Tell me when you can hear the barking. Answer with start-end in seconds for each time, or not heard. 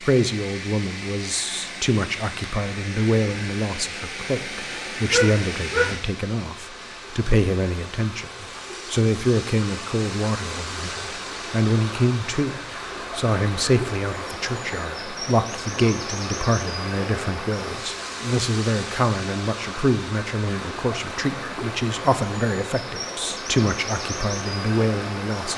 5.1-6.0.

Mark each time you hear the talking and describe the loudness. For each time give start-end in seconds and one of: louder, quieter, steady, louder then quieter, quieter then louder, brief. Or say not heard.
0.0-25.5 steady.